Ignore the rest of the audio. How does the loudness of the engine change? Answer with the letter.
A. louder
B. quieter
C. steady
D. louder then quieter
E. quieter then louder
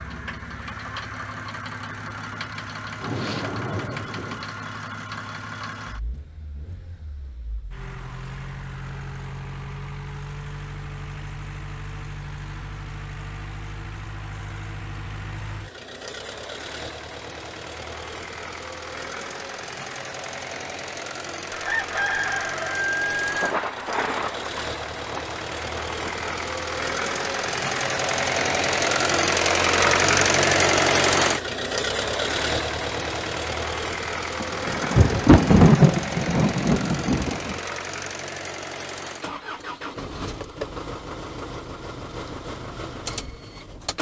D.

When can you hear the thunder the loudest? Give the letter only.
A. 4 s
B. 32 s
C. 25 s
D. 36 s
D.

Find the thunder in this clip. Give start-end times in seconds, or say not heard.
3.0-4.5, 23.2-26.3, 34.4-37.6.